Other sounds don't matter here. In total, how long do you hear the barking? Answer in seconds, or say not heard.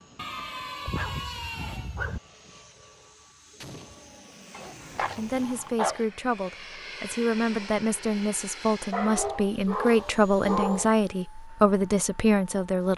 6 s.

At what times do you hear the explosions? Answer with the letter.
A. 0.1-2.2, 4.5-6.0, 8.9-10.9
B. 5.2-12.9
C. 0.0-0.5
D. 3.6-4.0
D.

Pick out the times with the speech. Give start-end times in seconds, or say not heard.
5.2-12.9.